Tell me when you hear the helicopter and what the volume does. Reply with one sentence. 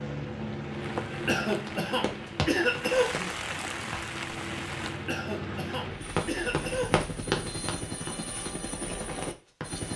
The helicopter can be heard from 0.0 to 9.9 s, getting quieter then louder.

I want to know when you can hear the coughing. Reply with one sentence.
The coughing can be heard from 1.2 to 3.3 s and from 5.0 to 7.0 s.